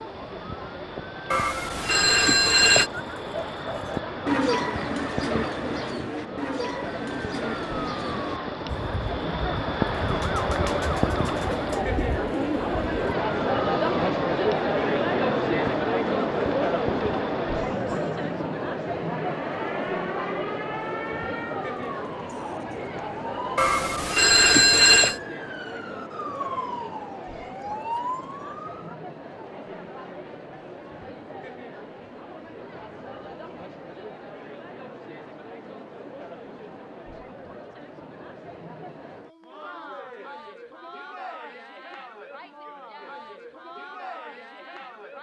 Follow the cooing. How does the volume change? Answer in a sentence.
The volume of the cooing goes down.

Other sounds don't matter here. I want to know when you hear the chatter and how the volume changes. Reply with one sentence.
The chatter can be heard from 0.0 to 45.1 s, getting louder then quieter.